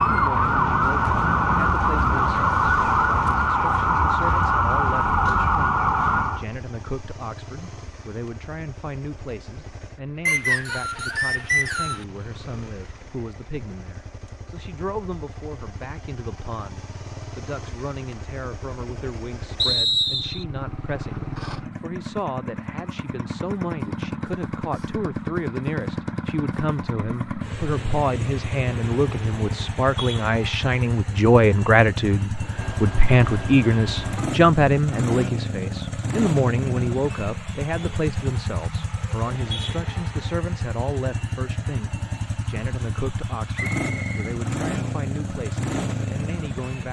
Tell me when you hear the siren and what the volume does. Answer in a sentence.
You can hear the siren from 0.0 to 6.5 s, at a steady volume.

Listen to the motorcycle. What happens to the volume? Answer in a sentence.
The volume of the motorcycle goes up.